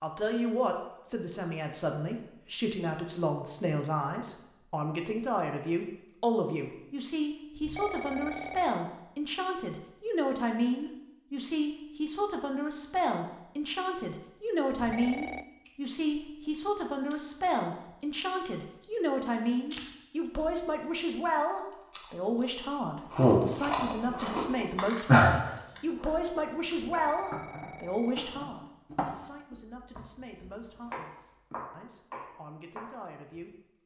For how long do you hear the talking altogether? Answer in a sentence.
You can hear the talking for 34 seconds altogether.